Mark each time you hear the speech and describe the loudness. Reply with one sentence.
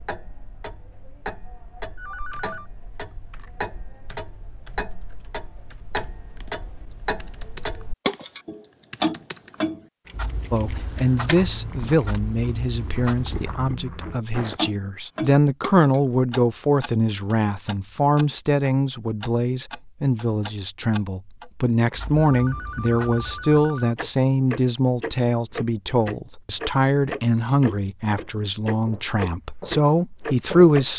The speech can be heard from 10.5 to 30.9 s, at a steady volume.